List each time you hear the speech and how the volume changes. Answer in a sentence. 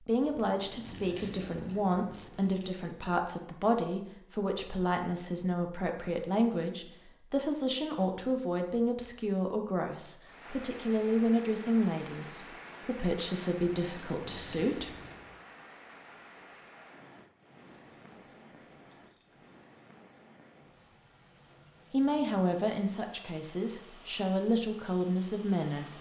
The speech can be heard from 0.0 to 14.9 s, at a steady volume; and from 21.9 to 25.9 s, getting quieter then louder.